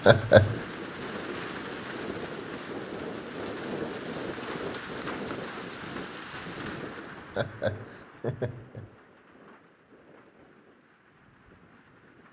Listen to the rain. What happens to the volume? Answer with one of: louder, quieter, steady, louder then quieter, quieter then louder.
quieter.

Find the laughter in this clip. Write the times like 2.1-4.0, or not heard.
0.1-0.6, 7.3-8.9.